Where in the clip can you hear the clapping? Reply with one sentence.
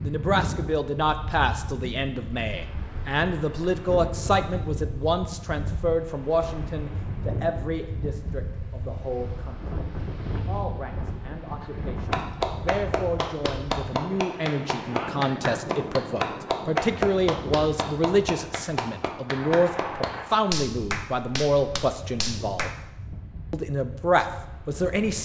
You can hear the clapping from 11.6 to 22.8 s.